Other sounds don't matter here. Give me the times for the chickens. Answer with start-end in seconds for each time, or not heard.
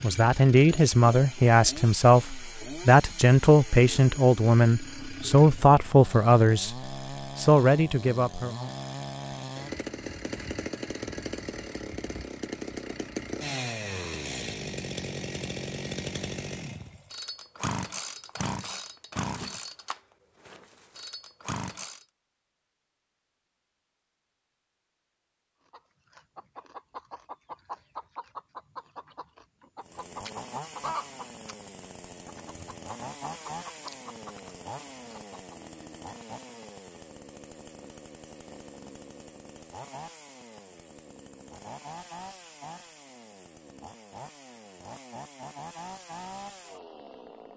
25.7-35.5.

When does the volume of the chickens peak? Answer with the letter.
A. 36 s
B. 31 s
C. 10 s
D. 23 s
B.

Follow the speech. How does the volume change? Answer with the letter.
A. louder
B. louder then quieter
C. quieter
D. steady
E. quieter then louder
D.